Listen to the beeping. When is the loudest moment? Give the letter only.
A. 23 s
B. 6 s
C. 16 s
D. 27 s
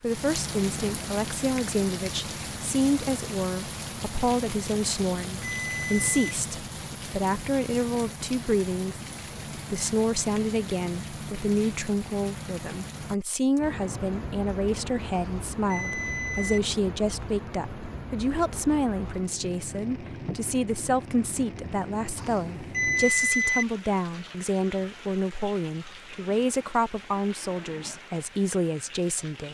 A.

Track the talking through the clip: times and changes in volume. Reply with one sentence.
You can hear the talking from 0.0 to 29.4 s, at a steady volume.